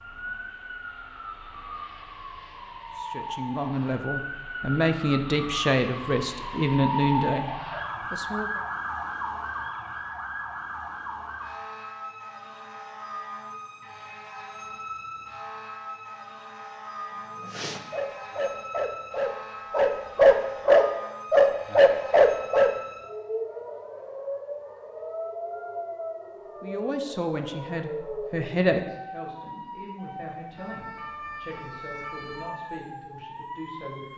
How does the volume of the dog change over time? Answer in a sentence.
The volume of the dog goes up.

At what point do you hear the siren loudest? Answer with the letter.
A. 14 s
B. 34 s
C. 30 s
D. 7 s
D.